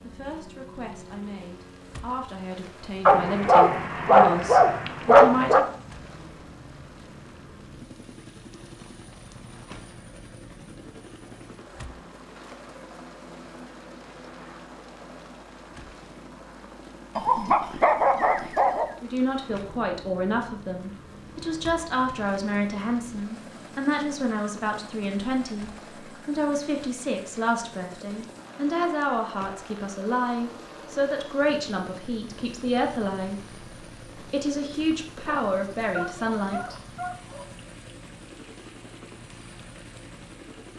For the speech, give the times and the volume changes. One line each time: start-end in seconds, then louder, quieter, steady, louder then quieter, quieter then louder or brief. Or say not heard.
0.0-5.7 louder
19.0-33.5 steady
34.1-36.8 brief.